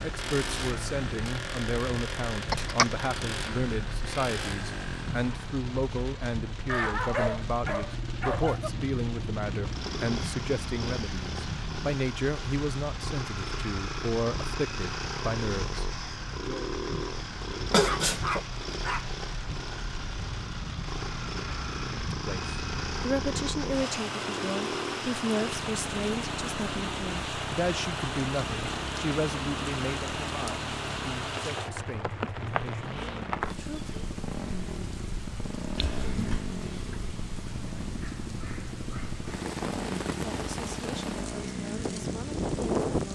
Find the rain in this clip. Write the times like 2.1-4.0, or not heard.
0.0-43.1.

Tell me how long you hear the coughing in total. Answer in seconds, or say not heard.
2 s.